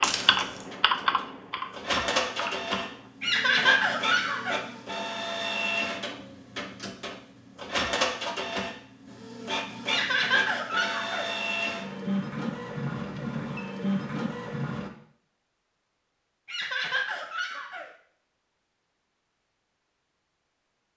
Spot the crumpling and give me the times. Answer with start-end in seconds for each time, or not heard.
0.0-0.7.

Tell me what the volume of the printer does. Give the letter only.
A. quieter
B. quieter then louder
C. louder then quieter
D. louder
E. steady
E.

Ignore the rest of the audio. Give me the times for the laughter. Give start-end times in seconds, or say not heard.
3.2-4.6, 9.8-11.3, 16.4-17.9.